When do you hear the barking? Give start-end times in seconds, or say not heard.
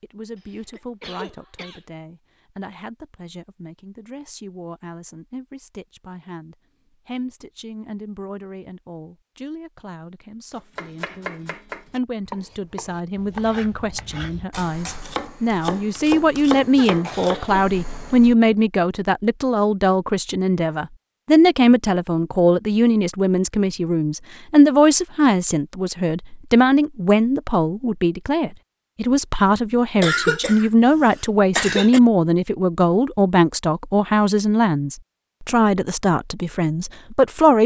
not heard.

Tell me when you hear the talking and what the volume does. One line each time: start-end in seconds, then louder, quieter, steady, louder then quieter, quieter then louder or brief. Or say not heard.
0.0-37.6 louder.